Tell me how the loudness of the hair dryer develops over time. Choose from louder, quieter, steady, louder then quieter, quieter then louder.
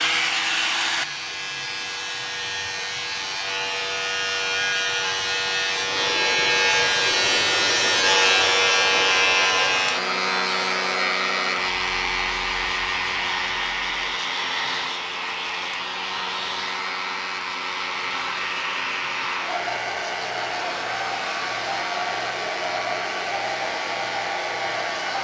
steady.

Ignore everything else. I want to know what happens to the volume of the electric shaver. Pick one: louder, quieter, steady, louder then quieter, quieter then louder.
louder then quieter.